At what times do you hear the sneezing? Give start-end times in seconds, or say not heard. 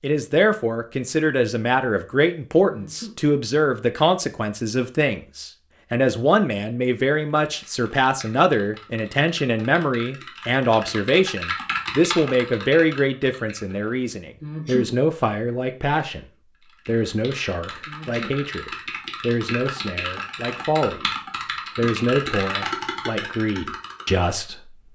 2.6-3.1, 14.4-14.9, 17.9-18.4.